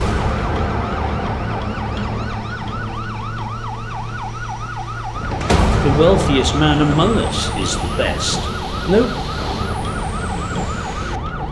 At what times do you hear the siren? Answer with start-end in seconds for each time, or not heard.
0.0-11.4.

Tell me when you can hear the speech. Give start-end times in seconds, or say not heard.
5.8-9.2.